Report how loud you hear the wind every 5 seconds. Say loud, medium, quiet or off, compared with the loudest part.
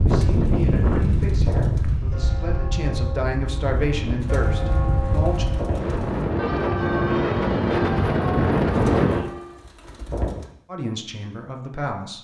loud, loud, off.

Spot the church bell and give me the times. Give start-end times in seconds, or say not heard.
1.9-9.7.